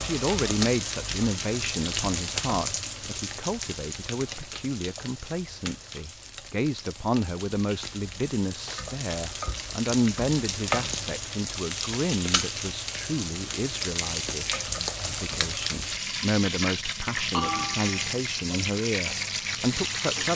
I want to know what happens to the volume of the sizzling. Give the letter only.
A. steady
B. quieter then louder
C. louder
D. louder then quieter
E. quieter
B.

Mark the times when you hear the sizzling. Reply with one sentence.
The sizzling can be heard from 0.0 to 20.3 s.